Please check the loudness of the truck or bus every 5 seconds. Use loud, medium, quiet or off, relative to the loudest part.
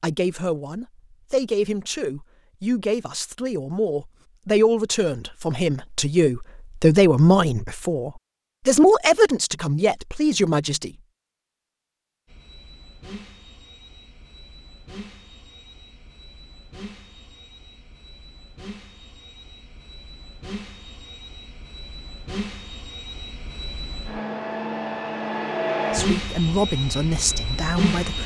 off, off, quiet, quiet, medium, loud.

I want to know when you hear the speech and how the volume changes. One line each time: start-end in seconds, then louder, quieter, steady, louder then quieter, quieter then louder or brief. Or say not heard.
0.0-10.9 louder
25.9-28.2 brief.